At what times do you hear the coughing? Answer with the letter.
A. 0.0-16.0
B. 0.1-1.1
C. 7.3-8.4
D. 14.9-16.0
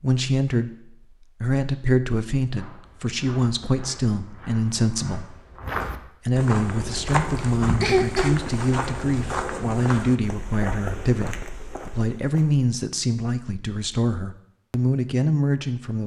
C.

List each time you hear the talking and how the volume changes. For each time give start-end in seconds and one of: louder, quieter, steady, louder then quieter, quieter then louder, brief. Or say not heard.
0.0-16.0 steady.